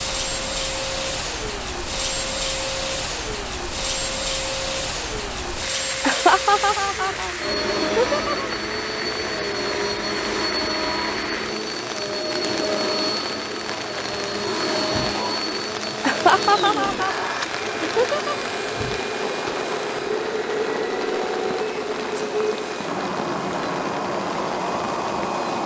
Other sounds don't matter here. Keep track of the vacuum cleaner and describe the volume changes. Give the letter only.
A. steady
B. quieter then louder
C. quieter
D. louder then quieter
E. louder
A.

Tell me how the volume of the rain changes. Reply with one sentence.
The volume of the rain stays about the same.